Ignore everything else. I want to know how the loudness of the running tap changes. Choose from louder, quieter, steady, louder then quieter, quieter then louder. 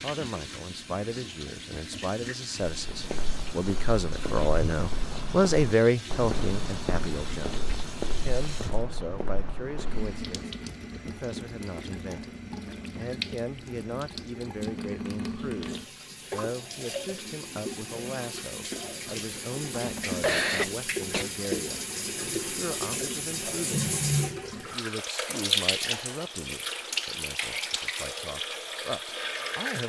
louder.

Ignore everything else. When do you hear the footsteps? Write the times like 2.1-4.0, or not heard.
2.6-10.2.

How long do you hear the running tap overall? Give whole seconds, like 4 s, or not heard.
30 s.